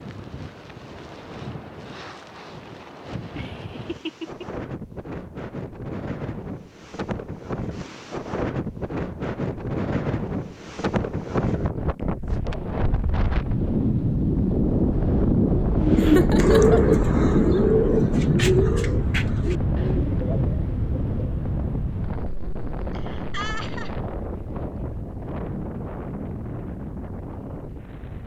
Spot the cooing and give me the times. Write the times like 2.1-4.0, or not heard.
15.8-21.4.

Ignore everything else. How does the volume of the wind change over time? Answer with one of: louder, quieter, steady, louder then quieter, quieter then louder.
louder then quieter.